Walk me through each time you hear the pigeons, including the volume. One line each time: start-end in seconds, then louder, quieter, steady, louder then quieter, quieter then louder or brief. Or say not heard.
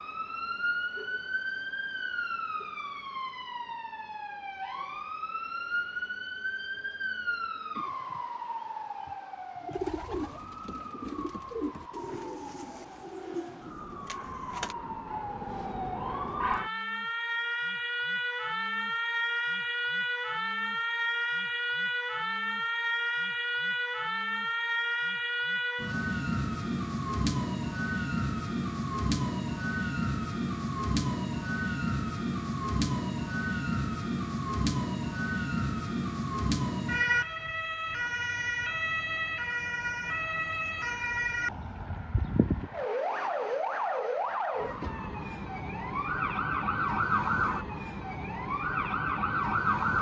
9.6-14.8 quieter.